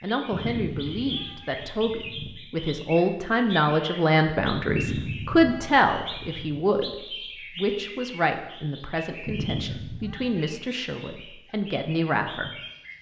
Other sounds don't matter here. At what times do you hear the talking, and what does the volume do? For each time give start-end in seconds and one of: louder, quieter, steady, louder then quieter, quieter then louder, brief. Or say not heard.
0.0-12.6 louder then quieter.